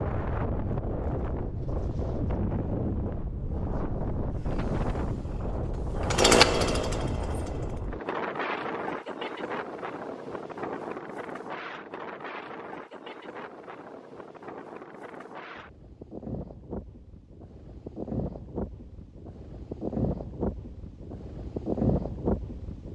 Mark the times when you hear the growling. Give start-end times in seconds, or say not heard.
not heard.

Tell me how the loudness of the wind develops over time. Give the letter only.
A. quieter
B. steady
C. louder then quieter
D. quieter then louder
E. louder
D.